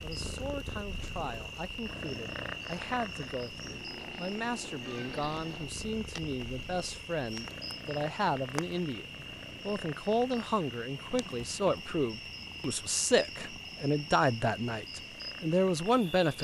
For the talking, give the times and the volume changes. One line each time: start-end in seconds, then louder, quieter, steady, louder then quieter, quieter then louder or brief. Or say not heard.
0.0-16.4 louder.